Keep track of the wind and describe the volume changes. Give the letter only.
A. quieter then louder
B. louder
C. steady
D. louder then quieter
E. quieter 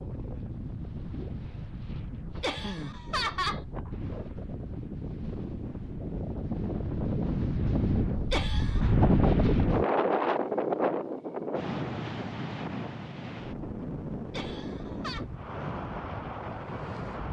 D.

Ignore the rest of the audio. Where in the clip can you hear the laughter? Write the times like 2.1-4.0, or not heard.
2.4-3.6, 8.3-8.9, 14.3-15.2.